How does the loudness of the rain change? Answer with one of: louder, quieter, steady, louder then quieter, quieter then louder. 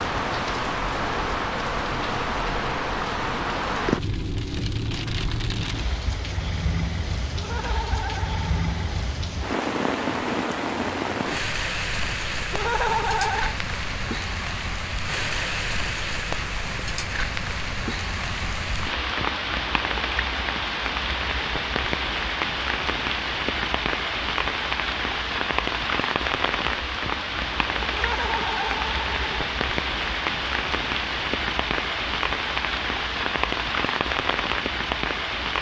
steady.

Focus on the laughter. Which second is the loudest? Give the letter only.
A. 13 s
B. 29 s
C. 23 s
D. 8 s
A.